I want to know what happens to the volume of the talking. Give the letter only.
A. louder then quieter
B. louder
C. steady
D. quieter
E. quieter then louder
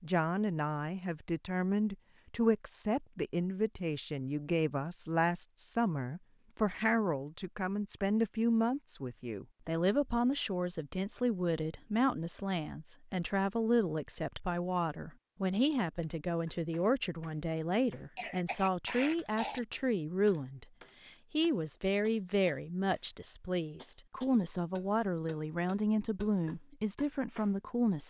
C.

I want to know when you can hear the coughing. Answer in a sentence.
You can hear the coughing from 18.1 to 19.6 s.